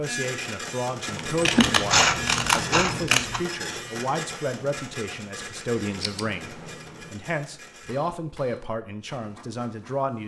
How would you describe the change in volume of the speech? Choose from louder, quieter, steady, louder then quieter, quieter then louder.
steady.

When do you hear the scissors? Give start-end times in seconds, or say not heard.
1.4-3.4, 5.8-6.8.